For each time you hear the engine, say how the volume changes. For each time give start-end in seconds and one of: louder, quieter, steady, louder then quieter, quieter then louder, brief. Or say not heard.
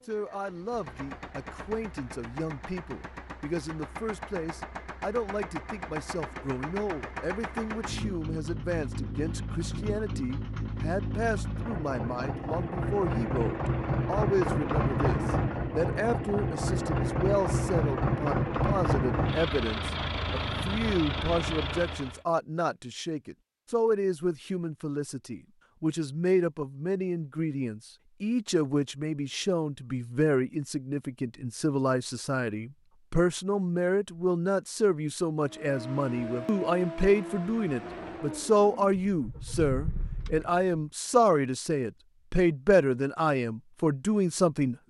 0.0-22.2 louder
35.5-40.6 quieter then louder.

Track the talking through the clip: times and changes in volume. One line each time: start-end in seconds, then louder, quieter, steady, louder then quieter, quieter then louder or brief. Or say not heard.
0.1-44.8 louder.